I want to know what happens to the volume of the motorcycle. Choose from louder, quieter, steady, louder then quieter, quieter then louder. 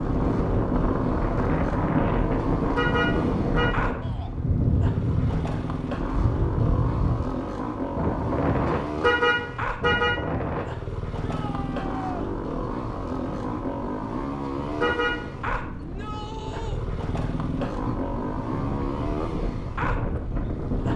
steady.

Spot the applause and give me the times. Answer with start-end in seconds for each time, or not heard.
not heard.